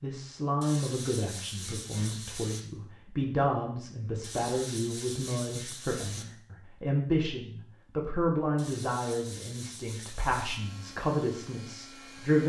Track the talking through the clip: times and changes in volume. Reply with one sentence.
The talking can be heard from 0.0 to 12.4 s, at a steady volume.